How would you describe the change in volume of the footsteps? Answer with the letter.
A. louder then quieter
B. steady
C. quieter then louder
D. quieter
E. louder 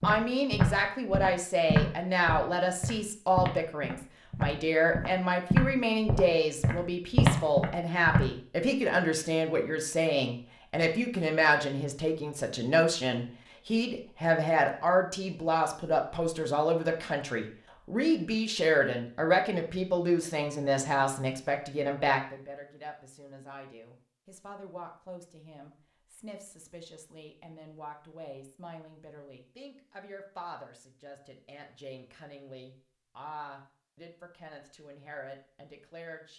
C.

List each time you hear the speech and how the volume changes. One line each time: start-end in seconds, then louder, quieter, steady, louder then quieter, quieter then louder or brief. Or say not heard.
0.0-36.3 quieter.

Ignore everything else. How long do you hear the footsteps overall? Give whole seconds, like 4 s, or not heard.
8 s.